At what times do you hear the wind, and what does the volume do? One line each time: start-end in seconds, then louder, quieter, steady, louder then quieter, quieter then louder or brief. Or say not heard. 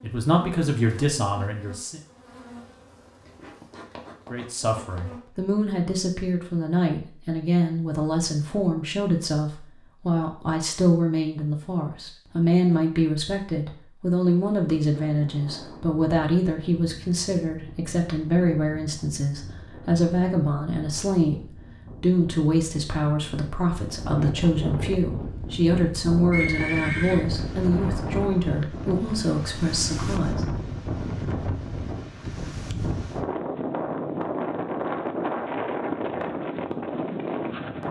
14.8-37.8 louder.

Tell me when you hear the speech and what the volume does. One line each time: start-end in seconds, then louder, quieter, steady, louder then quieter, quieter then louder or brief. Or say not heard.
0.0-2.0 brief
4.3-30.4 steady.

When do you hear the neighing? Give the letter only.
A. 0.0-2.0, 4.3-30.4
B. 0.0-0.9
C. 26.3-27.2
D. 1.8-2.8
C.